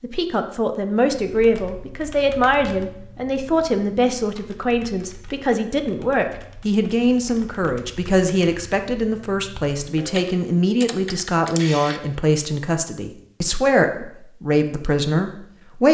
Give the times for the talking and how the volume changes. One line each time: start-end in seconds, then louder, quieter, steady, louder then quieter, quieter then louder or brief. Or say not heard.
0.0-15.8 steady.